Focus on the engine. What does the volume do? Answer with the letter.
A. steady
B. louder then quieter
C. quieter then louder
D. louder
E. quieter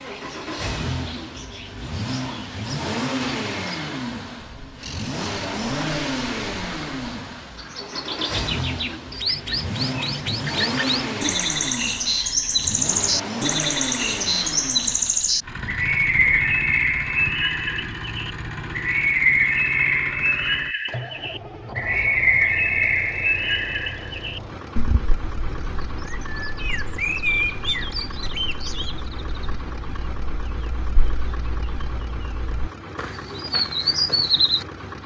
E.